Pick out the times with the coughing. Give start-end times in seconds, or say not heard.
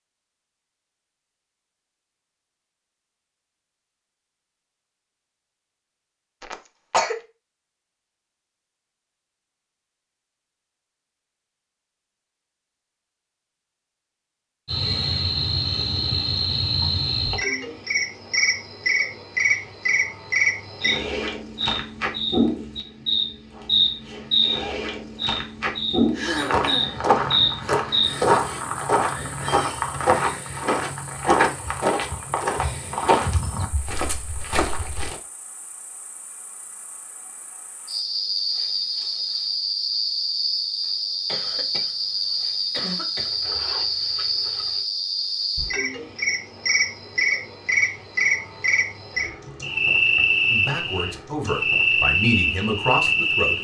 6.4-7.2, 26.1-26.9, 41.2-43.3.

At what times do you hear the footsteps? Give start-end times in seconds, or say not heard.
26.3-35.1.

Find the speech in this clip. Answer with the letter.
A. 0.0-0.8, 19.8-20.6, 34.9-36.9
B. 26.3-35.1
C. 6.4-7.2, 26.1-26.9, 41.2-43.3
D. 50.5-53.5
D.